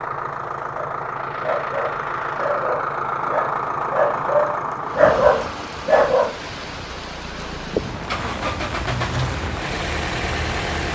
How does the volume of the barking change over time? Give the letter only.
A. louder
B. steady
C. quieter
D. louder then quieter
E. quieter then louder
A.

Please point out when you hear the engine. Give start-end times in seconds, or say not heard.
0.0-10.9.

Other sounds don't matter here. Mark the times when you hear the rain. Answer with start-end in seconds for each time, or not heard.
4.8-10.9.